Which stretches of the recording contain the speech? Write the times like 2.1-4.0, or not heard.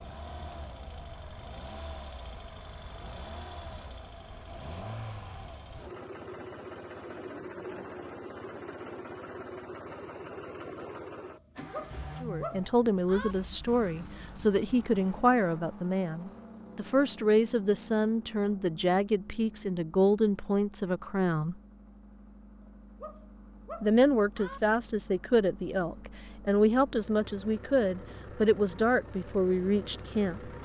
12.2-21.6, 23.8-30.5.